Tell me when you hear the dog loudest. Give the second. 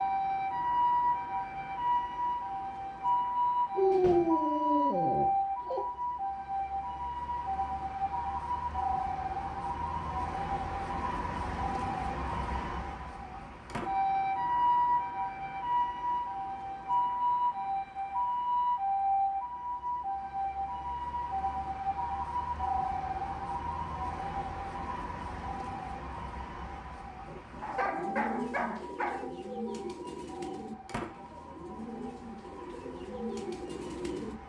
4 s.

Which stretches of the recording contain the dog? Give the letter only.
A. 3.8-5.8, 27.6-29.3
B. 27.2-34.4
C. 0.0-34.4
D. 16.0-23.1
A.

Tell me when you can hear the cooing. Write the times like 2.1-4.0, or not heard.
27.2-34.4.